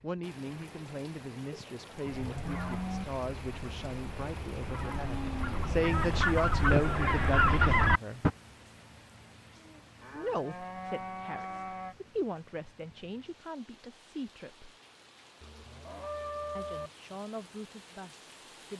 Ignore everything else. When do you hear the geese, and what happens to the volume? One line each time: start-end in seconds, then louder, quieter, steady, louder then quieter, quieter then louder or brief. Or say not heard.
2.2-8.3 louder.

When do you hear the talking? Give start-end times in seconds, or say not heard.
0.0-8.2, 10.2-14.7, 16.6-18.7.